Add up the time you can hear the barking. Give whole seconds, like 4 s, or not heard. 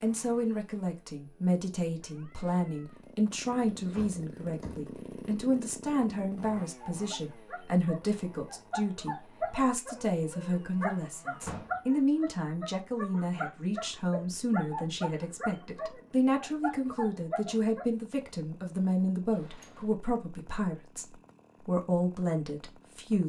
11 s.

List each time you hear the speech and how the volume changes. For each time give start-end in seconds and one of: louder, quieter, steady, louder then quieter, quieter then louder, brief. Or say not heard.
0.0-23.2 steady.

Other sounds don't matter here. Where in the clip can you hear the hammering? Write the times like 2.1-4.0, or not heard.
not heard.